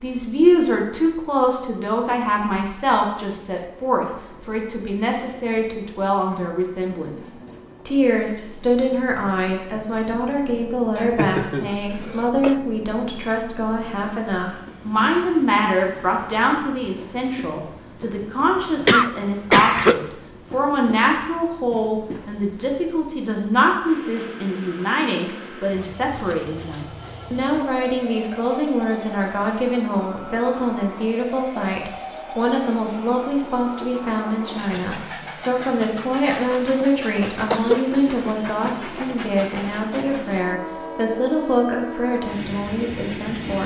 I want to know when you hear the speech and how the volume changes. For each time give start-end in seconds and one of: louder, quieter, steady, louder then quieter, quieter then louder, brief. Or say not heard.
0.0-43.6 steady.